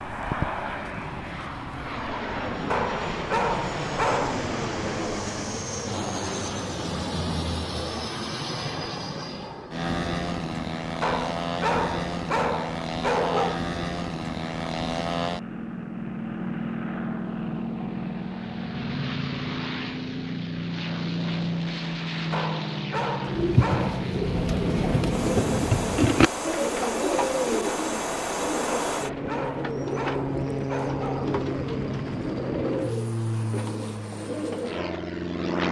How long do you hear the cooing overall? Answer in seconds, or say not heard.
12 s.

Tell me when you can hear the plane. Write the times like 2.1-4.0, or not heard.
0.0-35.6.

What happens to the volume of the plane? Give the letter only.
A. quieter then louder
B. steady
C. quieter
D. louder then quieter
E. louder
B.